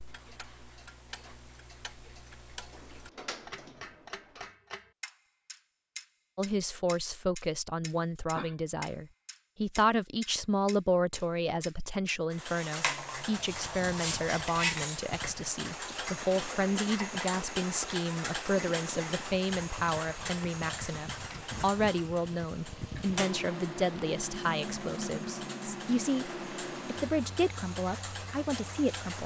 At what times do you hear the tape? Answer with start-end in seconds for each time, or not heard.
not heard.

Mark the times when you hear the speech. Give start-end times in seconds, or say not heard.
6.3-29.2.